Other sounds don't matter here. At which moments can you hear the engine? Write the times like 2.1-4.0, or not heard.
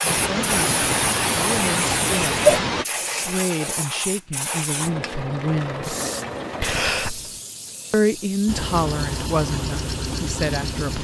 4.8-6.9, 8.4-10.9.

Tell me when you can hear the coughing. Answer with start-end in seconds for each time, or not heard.
0.1-2.9, 6.6-7.4.